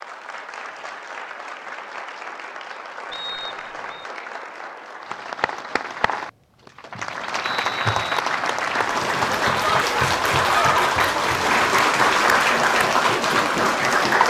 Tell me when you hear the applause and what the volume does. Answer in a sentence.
The applause can be heard from 0.0 to 14.2 s, getting louder.